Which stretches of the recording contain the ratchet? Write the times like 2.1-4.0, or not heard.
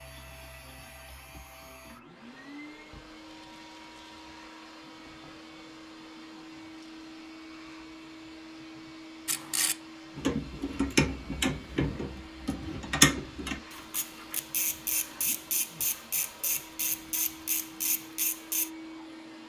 9.2-18.7.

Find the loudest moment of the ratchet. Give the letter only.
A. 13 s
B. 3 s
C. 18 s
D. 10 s
A.